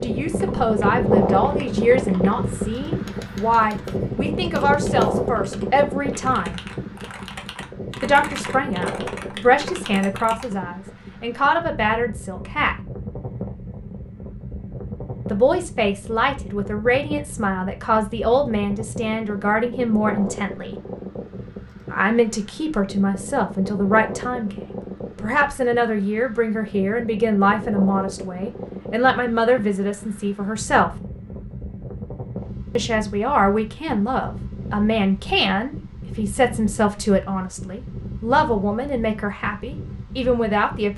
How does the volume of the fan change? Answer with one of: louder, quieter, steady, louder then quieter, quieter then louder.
quieter.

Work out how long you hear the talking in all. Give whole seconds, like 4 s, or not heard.
34 s.